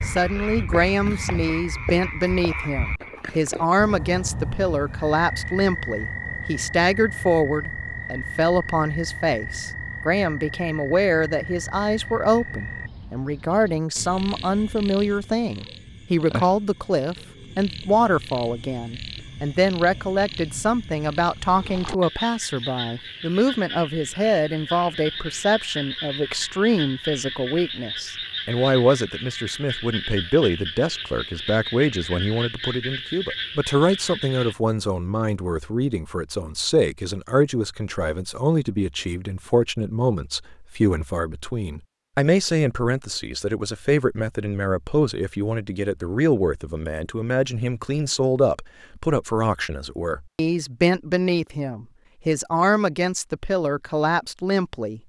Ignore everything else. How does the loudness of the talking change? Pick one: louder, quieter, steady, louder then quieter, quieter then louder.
steady.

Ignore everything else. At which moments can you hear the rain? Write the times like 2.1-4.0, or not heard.
not heard.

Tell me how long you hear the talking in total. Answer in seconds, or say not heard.
55 s.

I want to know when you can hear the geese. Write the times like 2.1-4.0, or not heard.
not heard.